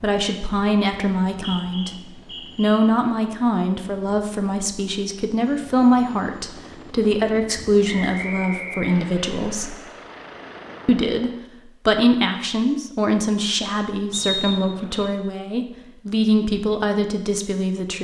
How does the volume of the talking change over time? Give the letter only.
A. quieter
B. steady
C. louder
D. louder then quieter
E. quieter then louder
B.